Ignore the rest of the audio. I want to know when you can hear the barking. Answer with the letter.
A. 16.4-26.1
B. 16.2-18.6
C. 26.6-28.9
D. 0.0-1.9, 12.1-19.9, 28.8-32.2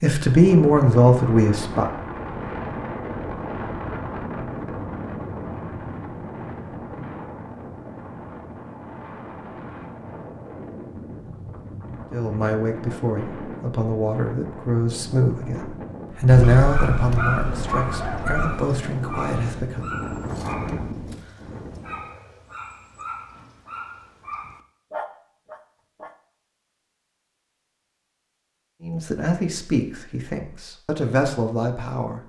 A.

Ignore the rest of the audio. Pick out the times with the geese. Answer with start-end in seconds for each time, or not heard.
16.2-18.6.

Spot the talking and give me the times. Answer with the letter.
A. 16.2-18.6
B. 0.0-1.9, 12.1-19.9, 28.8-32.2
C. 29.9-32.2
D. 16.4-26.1
B.